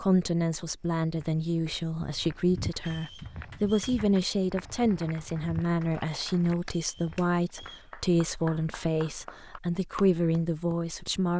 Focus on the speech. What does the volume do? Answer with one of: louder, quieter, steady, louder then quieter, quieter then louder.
steady.